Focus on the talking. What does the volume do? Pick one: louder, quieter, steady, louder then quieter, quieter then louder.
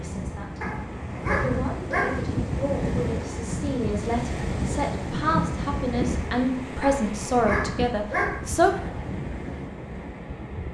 louder.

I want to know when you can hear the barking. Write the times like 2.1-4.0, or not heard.
0.6-2.2, 6.8-8.4.